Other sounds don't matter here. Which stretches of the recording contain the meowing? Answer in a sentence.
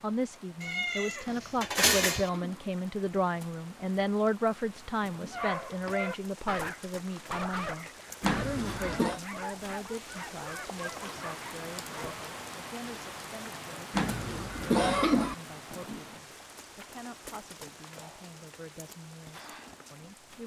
You can hear the meowing from 0.6 to 2.3 s.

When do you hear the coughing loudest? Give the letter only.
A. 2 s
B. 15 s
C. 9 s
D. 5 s
B.